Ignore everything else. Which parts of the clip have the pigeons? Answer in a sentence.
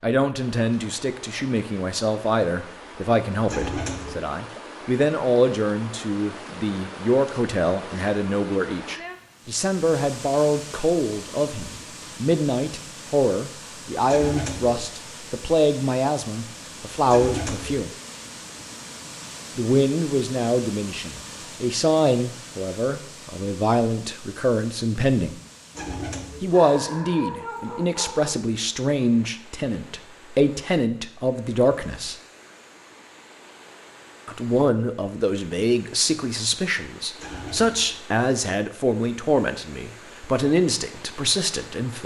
You can hear the pigeons from 3.5 to 4.2 s, from 14.1 to 14.8 s, from 17.1 to 17.9 s, from 25.8 to 26.5 s and from 37.1 to 38.0 s.